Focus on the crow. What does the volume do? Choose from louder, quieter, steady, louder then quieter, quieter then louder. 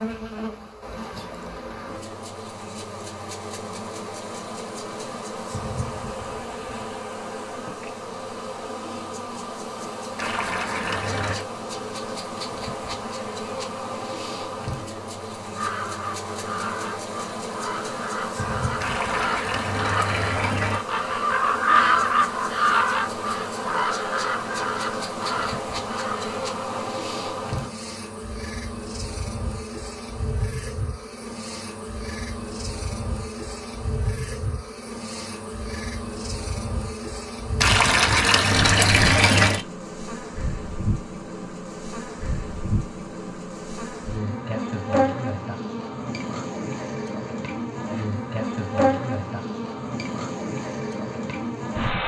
louder then quieter.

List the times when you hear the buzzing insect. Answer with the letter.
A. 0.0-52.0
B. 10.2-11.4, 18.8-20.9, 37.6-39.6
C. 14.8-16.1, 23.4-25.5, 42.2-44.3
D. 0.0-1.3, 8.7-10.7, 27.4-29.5
A.